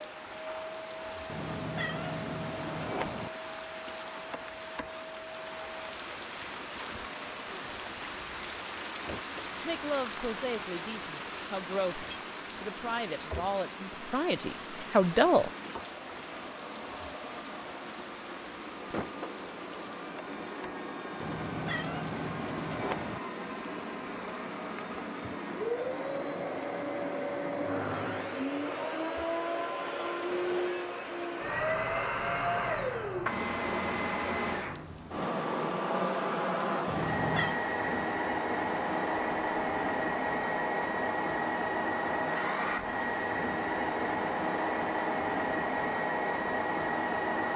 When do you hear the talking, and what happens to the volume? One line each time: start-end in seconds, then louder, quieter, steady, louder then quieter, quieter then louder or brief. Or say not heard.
9.6-15.5 louder.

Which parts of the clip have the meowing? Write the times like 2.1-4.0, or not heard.
1.2-3.3, 21.2-23.2, 36.9-37.6.